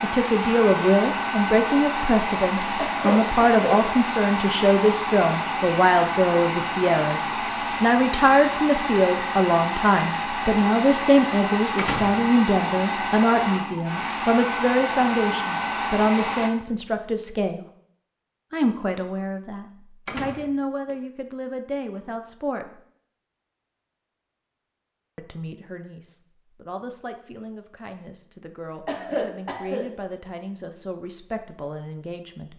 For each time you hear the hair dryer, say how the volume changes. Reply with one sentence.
You can hear the hair dryer from 0.0 to 16.5 s, at a steady volume.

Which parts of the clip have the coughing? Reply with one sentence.
You can hear the coughing from 2.8 to 3.6 s and from 28.9 to 29.9 s.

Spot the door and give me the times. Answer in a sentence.
The door can be heard from 11.8 to 12.2 s and from 20.1 to 20.9 s.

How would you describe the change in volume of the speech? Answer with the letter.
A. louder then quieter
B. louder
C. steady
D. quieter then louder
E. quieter
E.